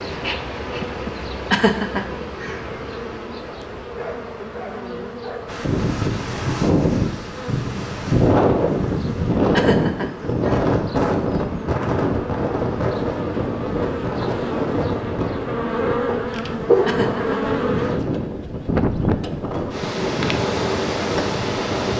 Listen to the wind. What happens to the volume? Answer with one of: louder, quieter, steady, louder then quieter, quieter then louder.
quieter.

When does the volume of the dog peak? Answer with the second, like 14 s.
17 s.